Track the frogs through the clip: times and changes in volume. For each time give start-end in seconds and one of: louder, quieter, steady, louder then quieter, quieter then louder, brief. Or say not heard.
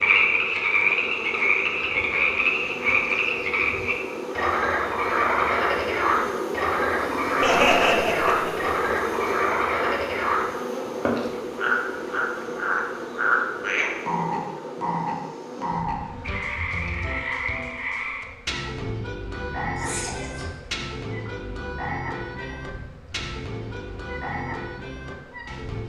0.0-25.8 quieter.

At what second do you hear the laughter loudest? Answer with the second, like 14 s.
8 s.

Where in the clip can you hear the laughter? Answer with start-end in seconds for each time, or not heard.
7.4-8.8, 19.8-20.6.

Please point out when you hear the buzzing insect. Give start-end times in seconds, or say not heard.
0.0-25.8.